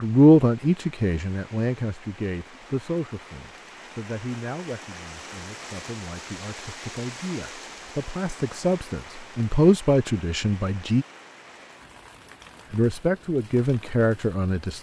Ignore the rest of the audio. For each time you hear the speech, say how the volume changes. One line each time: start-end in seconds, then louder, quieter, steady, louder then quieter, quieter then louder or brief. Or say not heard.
0.0-11.1 quieter then louder
12.7-14.7 brief.